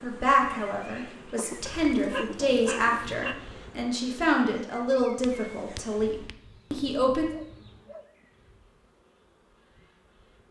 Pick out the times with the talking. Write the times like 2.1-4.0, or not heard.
0.0-7.3.